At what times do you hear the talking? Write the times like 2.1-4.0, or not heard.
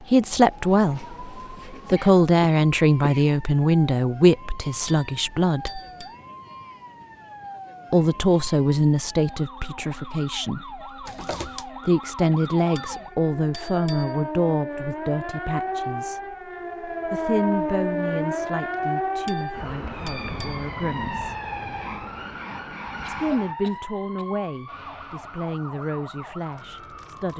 0.1-5.8, 7.9-10.8, 11.7-16.2, 17.1-21.5, 23.1-27.3.